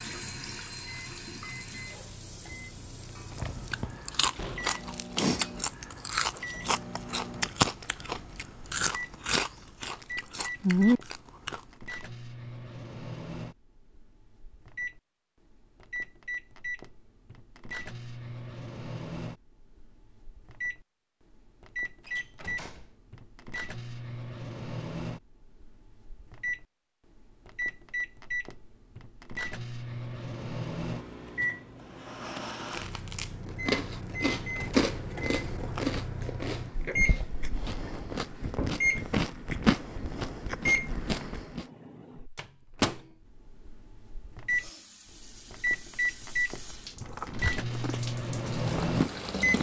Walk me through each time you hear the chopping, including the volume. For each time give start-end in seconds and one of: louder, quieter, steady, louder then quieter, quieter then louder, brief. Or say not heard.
not heard.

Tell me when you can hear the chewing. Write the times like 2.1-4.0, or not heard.
3.1-11.6, 32.7-41.6, 46.6-49.5.